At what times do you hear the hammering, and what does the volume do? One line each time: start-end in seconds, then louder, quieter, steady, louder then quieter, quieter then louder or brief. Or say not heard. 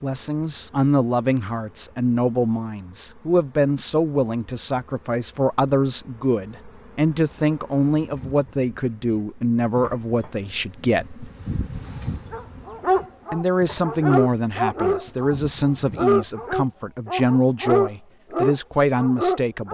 not heard.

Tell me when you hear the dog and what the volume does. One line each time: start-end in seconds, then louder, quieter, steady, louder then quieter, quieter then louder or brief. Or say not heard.
12.3-19.7 steady.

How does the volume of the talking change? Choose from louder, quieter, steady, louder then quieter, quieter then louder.
steady.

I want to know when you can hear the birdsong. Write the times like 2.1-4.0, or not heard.
not heard.